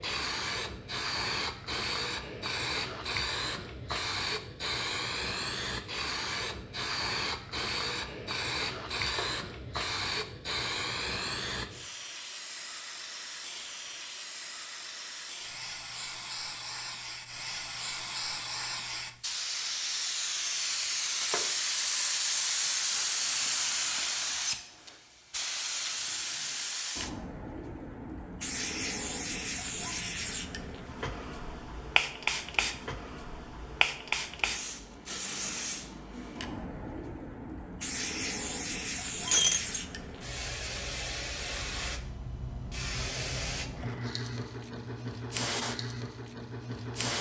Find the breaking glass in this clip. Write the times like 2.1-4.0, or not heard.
8.9-9.4, 21.1-21.6, 39.2-39.8.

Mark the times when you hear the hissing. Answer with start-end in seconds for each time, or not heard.
0.0-47.1.